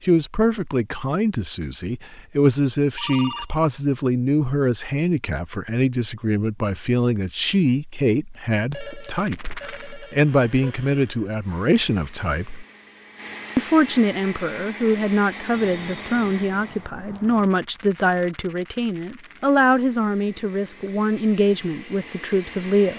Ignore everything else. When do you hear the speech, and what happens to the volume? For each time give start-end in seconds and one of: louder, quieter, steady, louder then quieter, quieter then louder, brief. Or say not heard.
0.0-12.7 steady
13.6-22.9 steady.